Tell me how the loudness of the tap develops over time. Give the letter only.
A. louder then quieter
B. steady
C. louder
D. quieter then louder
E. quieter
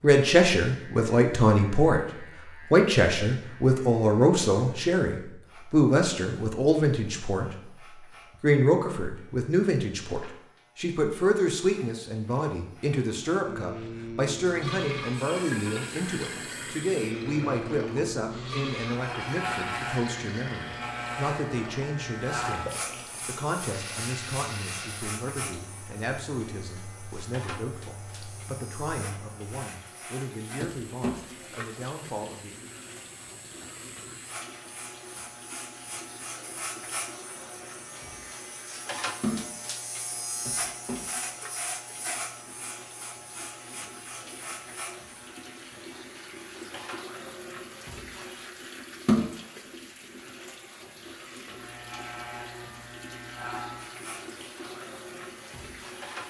D.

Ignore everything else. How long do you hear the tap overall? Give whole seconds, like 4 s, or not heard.
42 s.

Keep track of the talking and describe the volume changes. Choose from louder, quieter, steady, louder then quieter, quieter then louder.
quieter.